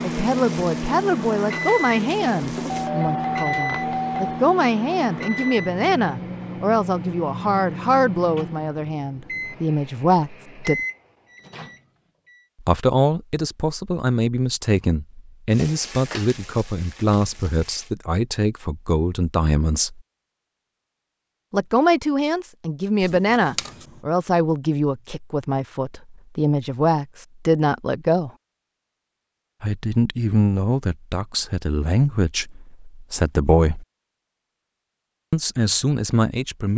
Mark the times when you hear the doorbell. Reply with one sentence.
The doorbell can be heard from 2.6 to 4.4 s and from 23.0 to 23.7 s.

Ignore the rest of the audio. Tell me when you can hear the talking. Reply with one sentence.
You can hear the talking from 0.0 to 10.8 s, from 12.6 to 20.0 s, from 21.5 to 28.3 s, from 29.6 to 33.9 s and from 35.3 to 36.7 s.